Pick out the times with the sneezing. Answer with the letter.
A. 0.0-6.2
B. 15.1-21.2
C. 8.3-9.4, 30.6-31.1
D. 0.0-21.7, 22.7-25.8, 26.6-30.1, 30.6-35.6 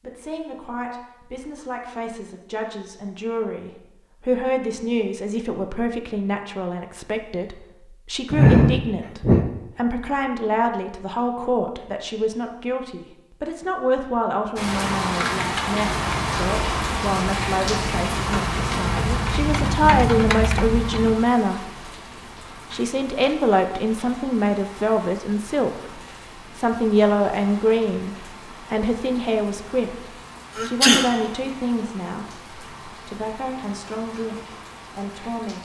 C.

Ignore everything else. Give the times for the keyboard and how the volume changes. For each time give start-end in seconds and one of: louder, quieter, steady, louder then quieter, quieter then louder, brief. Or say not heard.
15.1-21.2 louder.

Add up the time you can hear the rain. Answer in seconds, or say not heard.
21 s.